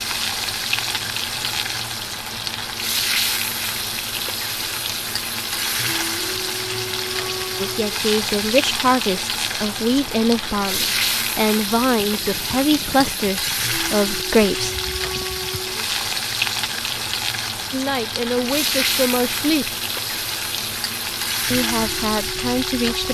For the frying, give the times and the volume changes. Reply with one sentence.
You can hear the frying from 0.0 to 23.1 s, at a steady volume.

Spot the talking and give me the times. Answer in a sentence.
The talking can be heard from 7.6 to 14.8 s, from 17.7 to 19.8 s and from 21.5 to 23.1 s.